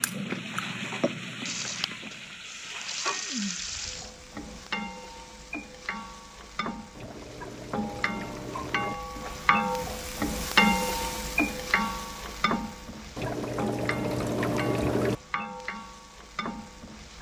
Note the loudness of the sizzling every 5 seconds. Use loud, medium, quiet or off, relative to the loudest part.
medium, medium, loud, medium.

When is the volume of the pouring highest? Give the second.
15 s.